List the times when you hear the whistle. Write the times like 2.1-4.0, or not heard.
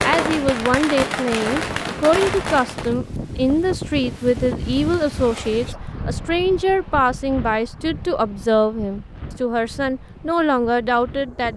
not heard.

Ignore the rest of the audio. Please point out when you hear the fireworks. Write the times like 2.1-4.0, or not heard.
0.0-3.0.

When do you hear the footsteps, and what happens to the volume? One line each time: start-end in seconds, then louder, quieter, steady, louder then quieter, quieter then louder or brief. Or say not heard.
not heard.